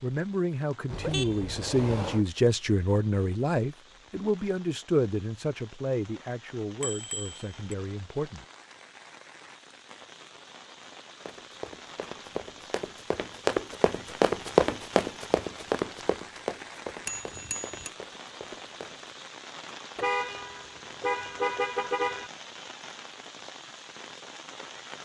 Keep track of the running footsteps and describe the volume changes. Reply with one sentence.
The loudness of the running footsteps goes up, then down.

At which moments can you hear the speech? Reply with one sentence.
You can hear the speech from 0.0 to 8.4 s.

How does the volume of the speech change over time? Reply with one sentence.
The volume of the speech goes down.